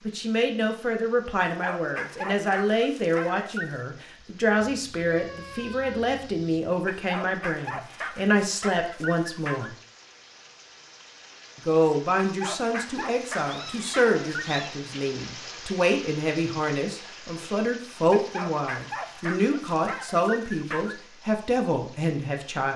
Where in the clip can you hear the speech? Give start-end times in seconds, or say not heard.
0.1-9.8, 11.7-22.7.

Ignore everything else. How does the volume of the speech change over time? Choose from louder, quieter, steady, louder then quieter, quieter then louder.
steady.